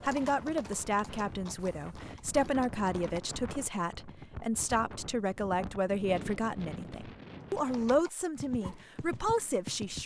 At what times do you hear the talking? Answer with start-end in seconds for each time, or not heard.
0.0-10.0.